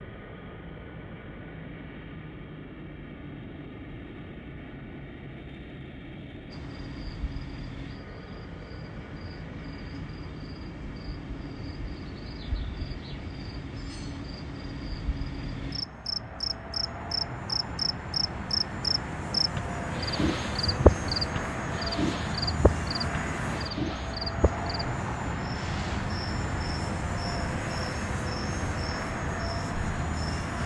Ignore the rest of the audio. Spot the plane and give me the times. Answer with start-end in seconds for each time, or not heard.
0.0-30.6.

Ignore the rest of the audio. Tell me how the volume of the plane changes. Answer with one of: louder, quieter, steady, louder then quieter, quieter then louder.
louder.